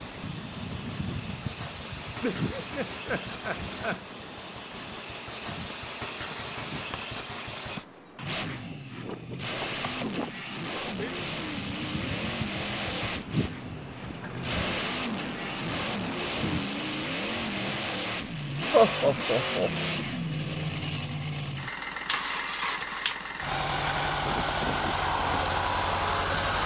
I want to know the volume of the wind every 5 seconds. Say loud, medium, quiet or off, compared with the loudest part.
loud, medium, loud, loud, off, off.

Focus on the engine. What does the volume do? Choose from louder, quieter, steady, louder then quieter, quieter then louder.
louder.